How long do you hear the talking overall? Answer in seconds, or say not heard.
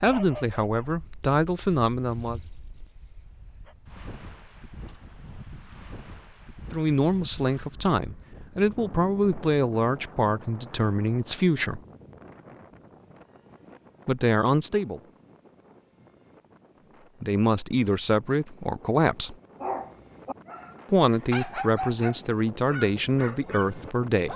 14 s.